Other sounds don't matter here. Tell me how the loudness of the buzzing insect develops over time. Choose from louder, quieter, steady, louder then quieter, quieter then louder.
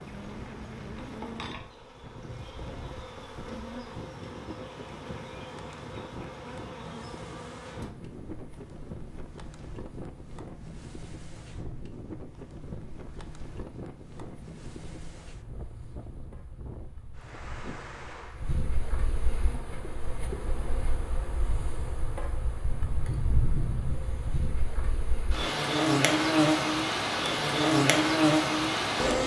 quieter then louder.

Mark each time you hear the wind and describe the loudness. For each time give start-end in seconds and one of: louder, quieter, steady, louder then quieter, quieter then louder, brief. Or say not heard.
0.0-18.6 steady.